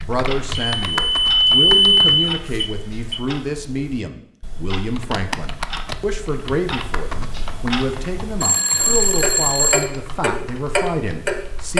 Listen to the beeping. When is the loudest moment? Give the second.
2 s.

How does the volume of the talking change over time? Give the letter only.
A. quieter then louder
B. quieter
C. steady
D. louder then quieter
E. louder
C.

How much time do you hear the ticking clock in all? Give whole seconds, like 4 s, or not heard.
12 s.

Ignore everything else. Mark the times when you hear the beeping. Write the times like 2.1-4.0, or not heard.
0.6-3.2, 8.4-9.8.